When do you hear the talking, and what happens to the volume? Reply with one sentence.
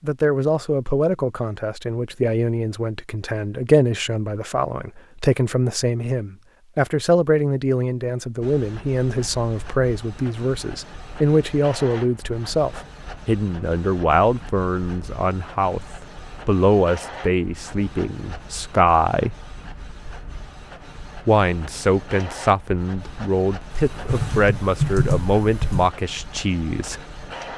You can hear the talking from 0.0 to 19.4 s, at a steady volume; and from 21.2 to 27.0 s, at a steady volume.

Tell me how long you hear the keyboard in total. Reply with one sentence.
The keyboard can be heard for 2 seconds in total.